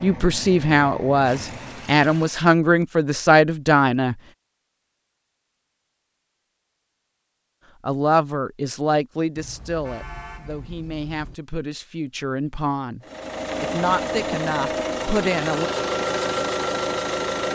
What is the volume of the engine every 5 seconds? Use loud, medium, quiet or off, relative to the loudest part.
quiet, off, loud, loud.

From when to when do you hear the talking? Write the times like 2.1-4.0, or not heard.
0.0-4.2, 7.8-15.7.